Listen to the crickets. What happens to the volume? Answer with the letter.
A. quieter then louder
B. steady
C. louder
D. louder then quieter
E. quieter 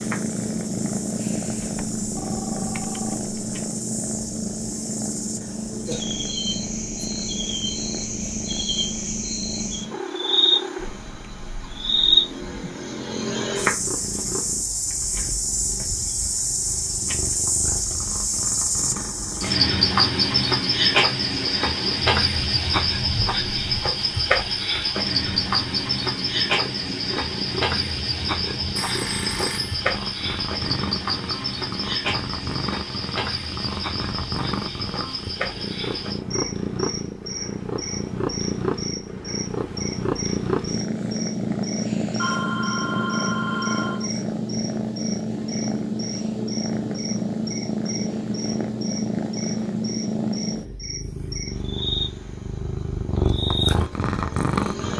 D.